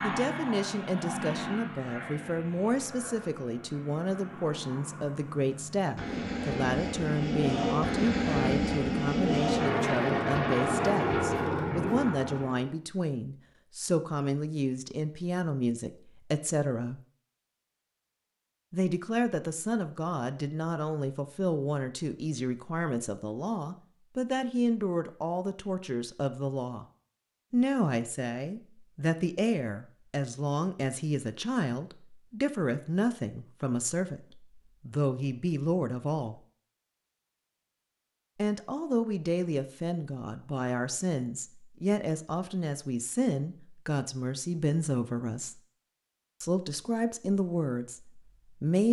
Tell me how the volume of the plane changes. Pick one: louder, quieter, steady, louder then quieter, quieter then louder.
quieter then louder.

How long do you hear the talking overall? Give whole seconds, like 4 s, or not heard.
44 s.